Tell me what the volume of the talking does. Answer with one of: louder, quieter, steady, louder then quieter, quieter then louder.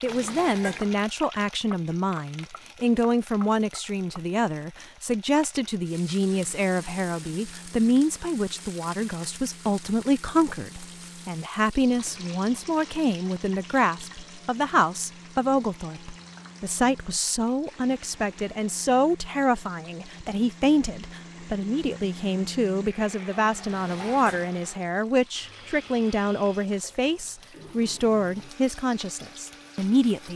steady.